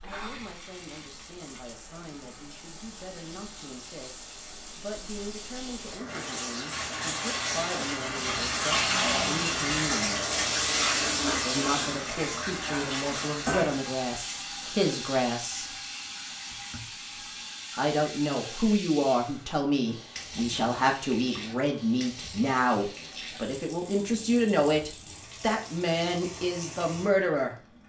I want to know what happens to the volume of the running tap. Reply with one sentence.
The volume of the running tap goes up, then down.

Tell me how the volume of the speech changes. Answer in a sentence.
The volume of the speech goes up.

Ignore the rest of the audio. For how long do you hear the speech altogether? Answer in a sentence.
You can hear the speech for 24 seconds altogether.